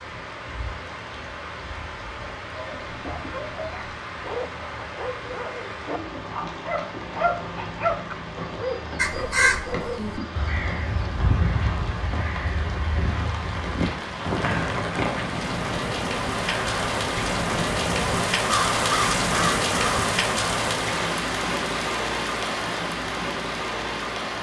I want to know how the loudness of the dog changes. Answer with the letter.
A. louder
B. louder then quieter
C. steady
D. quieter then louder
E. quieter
B.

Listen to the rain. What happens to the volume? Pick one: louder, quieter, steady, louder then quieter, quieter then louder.
louder.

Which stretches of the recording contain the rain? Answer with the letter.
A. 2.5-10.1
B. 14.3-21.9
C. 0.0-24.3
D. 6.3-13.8
C.